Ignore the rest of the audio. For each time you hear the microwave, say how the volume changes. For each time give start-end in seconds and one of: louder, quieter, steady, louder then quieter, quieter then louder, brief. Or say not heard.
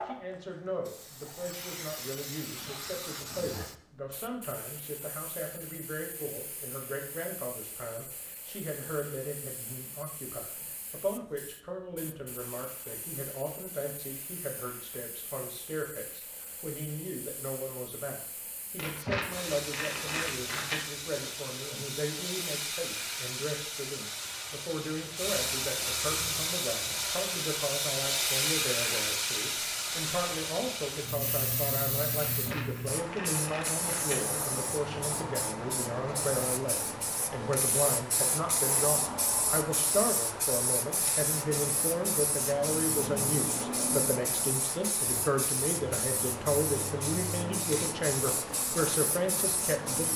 not heard.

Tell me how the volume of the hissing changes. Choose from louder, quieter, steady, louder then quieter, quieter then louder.
louder.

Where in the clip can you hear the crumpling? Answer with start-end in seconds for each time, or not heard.
18.8-20.8, 32.1-34.2.